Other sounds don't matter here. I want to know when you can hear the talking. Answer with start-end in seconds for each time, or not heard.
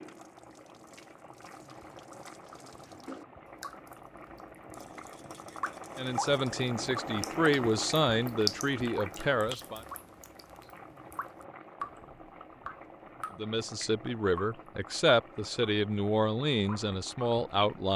6.0-9.8, 13.3-17.9.